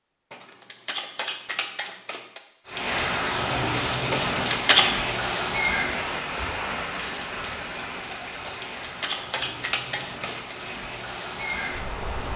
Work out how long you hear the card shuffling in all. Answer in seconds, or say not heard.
5 s.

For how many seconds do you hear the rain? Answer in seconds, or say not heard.
10 s.